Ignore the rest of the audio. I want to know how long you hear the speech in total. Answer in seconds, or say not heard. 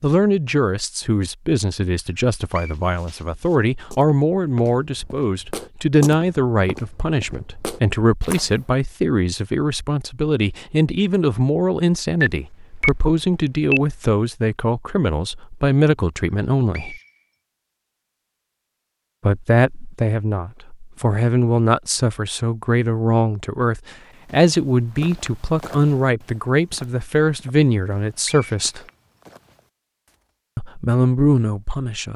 28 s.